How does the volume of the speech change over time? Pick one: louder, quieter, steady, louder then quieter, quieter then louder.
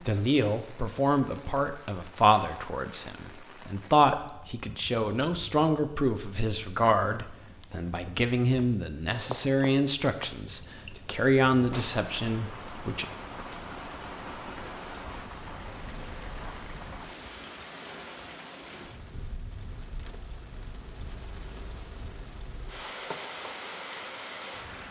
steady.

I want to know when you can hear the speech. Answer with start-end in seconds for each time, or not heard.
0.1-13.1.